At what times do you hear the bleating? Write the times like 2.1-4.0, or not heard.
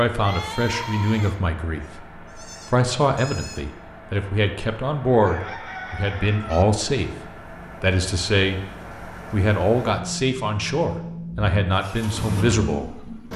0.1-3.6.